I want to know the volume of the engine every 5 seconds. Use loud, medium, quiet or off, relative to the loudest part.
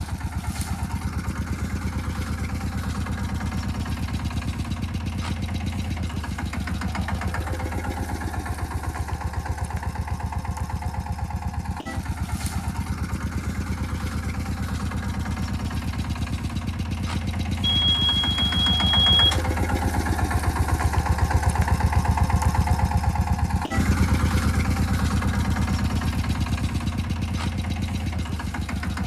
medium, medium, medium, loud, loud, loud.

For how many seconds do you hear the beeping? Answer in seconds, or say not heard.
2 s.